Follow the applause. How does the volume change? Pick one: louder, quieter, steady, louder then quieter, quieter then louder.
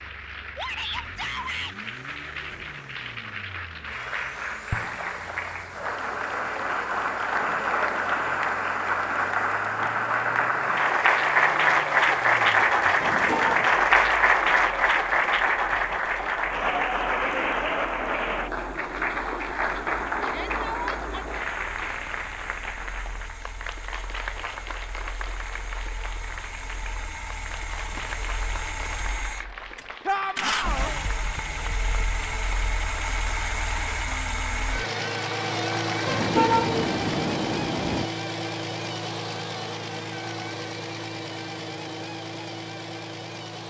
louder then quieter.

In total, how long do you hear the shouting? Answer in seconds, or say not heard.
3 s.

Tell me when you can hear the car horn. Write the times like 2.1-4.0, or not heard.
13.0-13.8, 36.0-38.1.